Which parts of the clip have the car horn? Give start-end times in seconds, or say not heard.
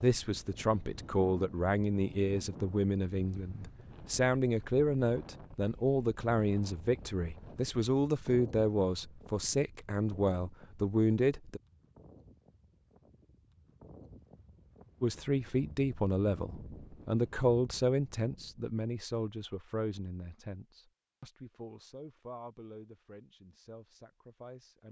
not heard.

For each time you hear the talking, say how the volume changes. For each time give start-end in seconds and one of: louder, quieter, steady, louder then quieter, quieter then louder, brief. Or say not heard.
0.0-11.6 steady
15.0-24.8 quieter.